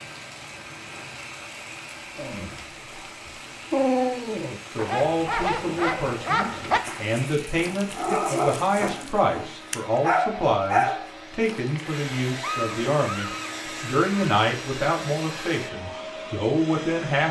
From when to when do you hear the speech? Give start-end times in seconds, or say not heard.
4.8-17.2.